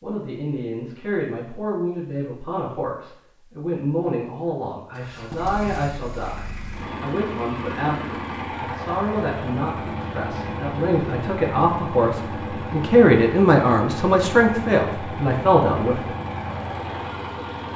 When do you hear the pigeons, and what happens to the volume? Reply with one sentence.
You can't hear the pigeons here.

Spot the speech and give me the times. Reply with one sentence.
The speech can be heard from 0.0 to 16.1 s.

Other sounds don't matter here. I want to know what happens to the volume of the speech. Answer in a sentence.
The volume of the speech goes up.